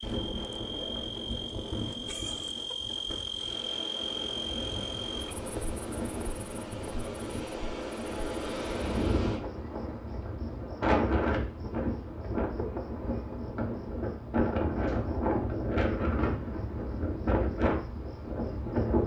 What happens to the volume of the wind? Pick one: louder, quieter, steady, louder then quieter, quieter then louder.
louder.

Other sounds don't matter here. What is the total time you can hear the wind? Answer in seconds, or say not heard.
19 s.